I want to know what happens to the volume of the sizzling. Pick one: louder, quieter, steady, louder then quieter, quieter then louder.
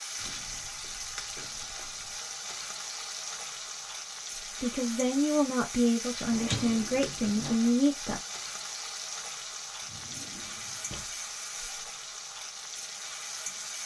steady.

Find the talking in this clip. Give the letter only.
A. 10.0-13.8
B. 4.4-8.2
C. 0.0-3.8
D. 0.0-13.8
B.